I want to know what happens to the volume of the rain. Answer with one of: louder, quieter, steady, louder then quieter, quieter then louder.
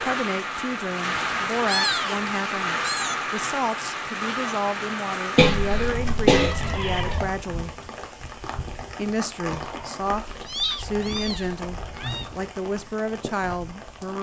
quieter.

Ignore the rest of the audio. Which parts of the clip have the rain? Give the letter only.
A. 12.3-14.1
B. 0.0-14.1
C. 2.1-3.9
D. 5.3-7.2
B.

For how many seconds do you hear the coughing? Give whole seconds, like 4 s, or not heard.
2 s.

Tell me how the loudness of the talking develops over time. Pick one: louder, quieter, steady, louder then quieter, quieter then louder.
steady.